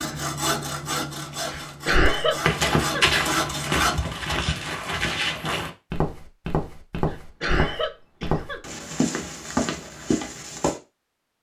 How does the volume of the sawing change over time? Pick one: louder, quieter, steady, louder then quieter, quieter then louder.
quieter then louder.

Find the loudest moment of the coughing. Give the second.
2 s.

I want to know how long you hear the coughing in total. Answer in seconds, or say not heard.
3 s.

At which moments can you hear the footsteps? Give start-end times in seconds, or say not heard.
2.4-10.8.